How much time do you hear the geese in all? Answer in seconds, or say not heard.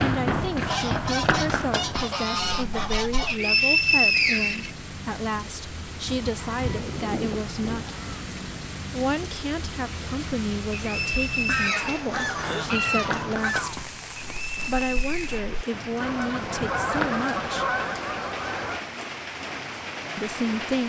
10 s.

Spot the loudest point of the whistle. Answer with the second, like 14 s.
4 s.